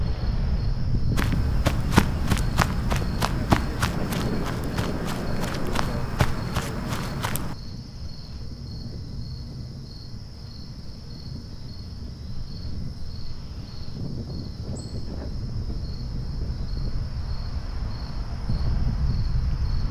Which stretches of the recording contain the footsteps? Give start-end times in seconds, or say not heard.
1.1-7.5.